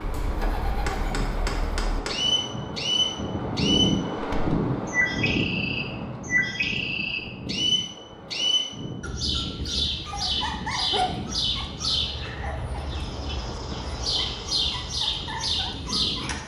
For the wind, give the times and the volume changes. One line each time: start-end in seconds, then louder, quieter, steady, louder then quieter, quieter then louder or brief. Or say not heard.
0.0-16.4 louder then quieter.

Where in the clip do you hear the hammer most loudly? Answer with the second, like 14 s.
2 s.